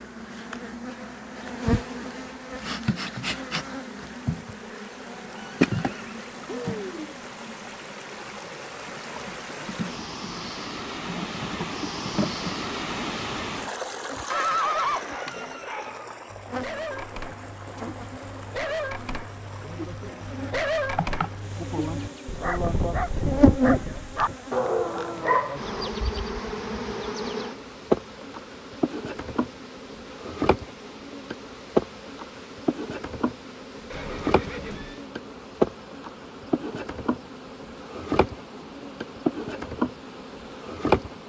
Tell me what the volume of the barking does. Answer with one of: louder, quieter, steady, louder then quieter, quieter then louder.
louder.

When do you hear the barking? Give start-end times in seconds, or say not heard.
14.6-25.9.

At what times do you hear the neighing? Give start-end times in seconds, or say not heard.
5.3-7.2, 14.3-15.6, 33.9-35.0.